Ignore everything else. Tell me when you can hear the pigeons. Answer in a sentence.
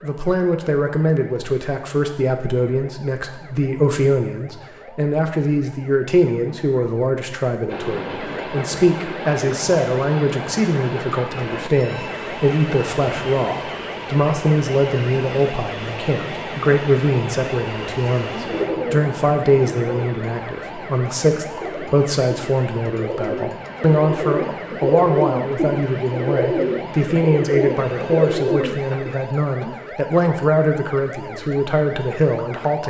You can hear the pigeons from 18.4 to 29.1 s.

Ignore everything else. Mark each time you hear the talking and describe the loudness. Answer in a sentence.
The talking can be heard from 0.0 to 32.8 s, at a steady volume.